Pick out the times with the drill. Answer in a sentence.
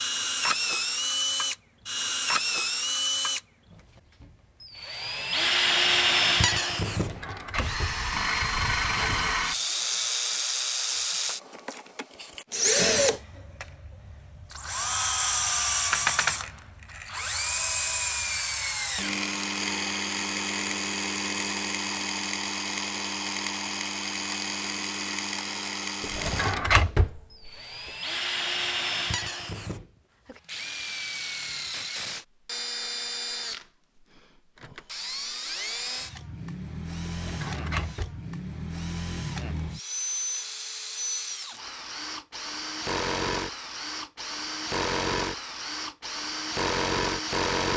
You can hear the drill from 0.0 to 47.7 s.